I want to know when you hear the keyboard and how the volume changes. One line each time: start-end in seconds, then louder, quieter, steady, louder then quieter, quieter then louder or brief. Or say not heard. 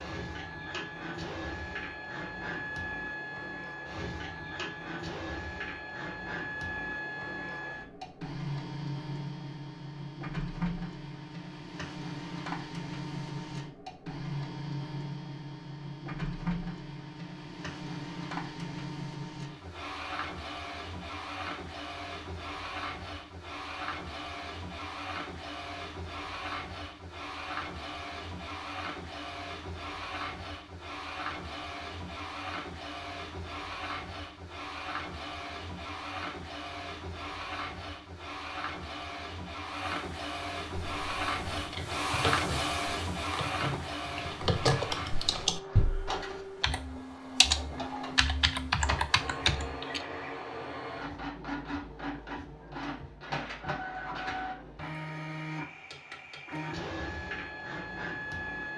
40.8-50.0 louder.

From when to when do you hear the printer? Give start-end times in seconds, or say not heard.
0.0-58.7.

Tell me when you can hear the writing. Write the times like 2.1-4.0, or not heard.
not heard.